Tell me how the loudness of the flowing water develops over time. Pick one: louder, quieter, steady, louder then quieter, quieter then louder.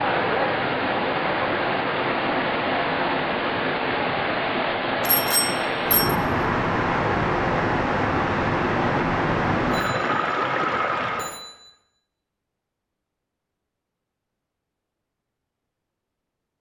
steady.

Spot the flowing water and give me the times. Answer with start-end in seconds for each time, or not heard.
0.0-11.3.